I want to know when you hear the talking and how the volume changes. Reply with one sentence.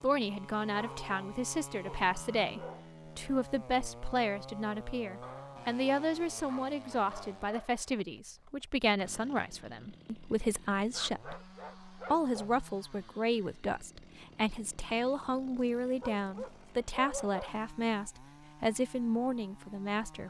You can hear the talking from 0.0 to 20.2 s, at a steady volume.